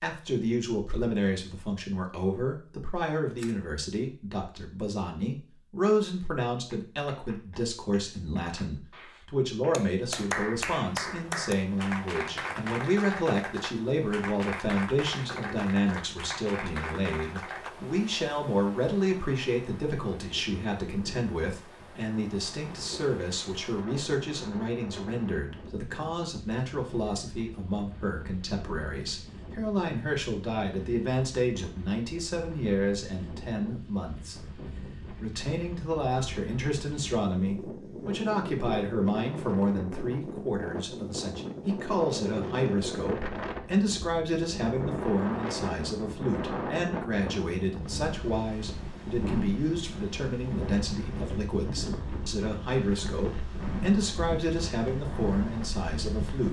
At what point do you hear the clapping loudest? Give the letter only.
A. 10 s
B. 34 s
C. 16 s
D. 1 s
A.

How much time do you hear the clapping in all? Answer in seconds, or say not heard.
11 s.